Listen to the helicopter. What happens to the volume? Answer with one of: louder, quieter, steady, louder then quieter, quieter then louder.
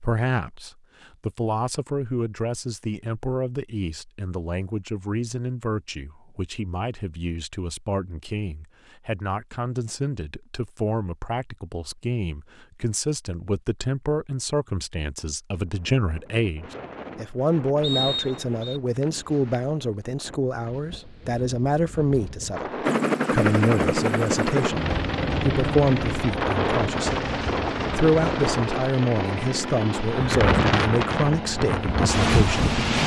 quieter.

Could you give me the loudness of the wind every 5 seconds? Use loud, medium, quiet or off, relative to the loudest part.
off, off, off, quiet, quiet, medium, loud.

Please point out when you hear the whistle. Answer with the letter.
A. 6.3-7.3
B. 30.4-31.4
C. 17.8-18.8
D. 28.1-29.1
C.